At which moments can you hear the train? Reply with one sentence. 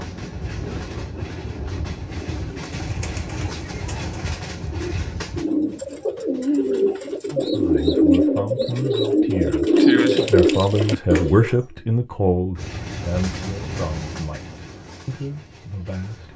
You can hear the train from 0.0 to 7.8 s and from 12.6 to 16.3 s.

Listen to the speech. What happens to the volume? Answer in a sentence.
The volume of the speech goes up, then down.